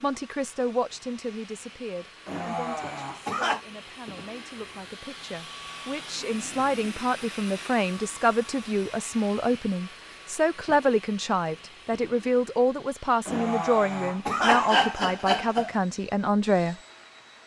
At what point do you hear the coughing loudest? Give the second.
15 s.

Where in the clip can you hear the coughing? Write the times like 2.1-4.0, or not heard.
2.2-3.6, 13.2-15.8.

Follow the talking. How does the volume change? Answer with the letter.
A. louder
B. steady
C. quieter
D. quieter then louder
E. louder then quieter
A.